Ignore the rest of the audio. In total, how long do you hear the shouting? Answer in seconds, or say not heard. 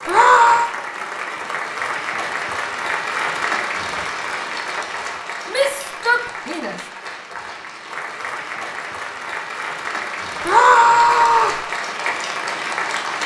3 s.